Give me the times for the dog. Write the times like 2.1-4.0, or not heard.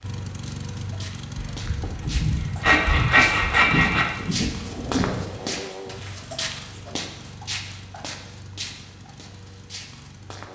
not heard.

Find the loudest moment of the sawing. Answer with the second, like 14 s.
3 s.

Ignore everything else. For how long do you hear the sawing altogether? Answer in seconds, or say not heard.
3 s.